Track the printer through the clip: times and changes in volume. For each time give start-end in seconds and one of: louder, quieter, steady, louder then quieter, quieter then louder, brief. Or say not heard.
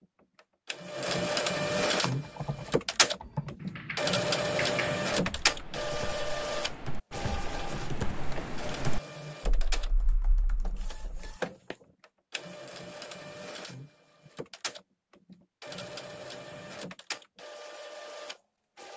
0.0-18.9 quieter.